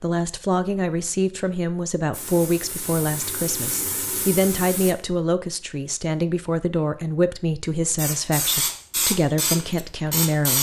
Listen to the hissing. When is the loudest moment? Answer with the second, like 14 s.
9 s.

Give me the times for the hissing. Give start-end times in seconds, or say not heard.
2.1-5.0, 8.0-10.5.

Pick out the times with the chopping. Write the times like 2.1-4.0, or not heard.
not heard.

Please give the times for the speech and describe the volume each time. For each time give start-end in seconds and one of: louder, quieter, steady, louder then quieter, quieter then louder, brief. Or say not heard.
0.0-10.5 steady.